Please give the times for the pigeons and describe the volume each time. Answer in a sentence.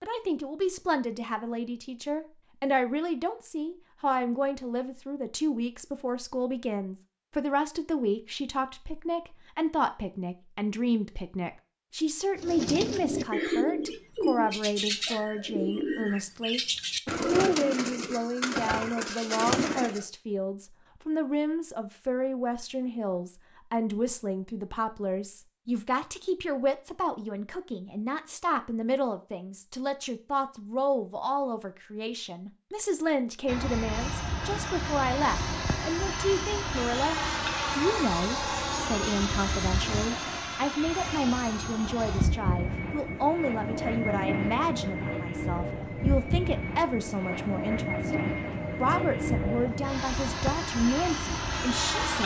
The pigeons can be heard from 12.3 to 20.1 s, at a steady volume.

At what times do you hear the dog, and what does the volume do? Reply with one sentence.
The dog can't be heard in this clip.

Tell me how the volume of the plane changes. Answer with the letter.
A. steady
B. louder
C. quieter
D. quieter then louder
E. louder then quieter
A.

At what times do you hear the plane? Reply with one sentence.
You can hear the plane from 33.5 to 52.2 s.